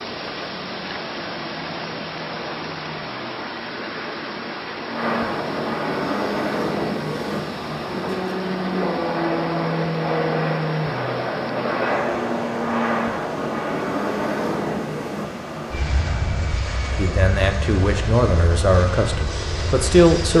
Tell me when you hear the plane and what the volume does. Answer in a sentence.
You can hear the plane from 0.1 to 20.3 s, getting louder then quieter.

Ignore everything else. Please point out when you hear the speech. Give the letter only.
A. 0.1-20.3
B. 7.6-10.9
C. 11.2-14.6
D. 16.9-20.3
D.